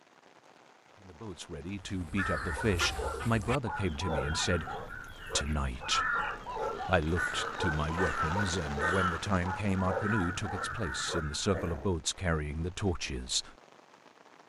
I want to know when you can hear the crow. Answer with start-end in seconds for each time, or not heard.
1.8-11.8.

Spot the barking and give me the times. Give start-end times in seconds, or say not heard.
2.5-11.9.